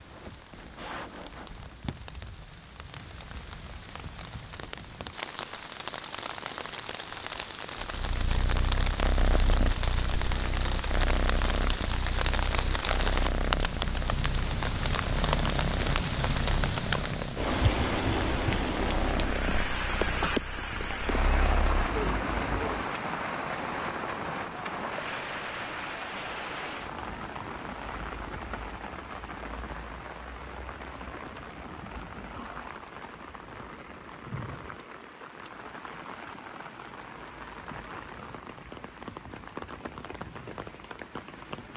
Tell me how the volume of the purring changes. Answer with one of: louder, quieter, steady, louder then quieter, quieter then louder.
steady.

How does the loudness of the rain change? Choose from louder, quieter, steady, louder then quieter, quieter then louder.
louder then quieter.